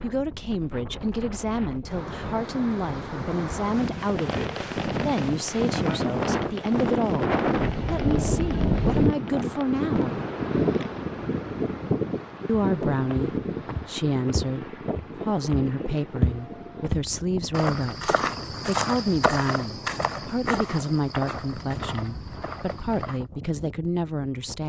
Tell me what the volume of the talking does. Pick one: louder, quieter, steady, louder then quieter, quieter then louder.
steady.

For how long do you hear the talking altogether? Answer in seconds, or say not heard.
22 s.